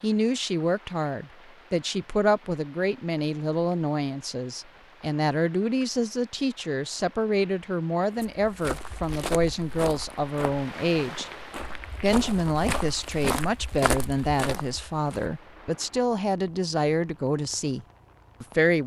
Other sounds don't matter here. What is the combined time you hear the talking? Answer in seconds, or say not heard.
18 s.